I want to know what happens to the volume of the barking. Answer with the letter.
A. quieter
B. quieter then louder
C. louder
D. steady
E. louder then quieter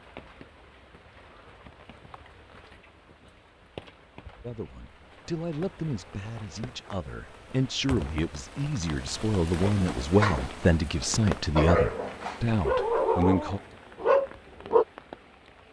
C.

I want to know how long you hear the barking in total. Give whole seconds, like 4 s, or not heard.
5 s.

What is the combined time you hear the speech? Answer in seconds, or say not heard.
9 s.